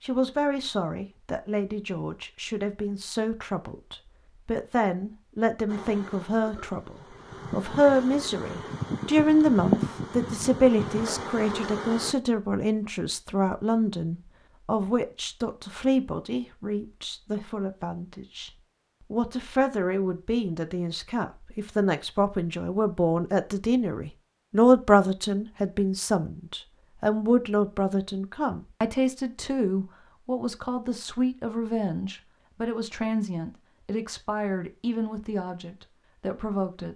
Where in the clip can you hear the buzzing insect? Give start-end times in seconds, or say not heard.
5.7-12.2.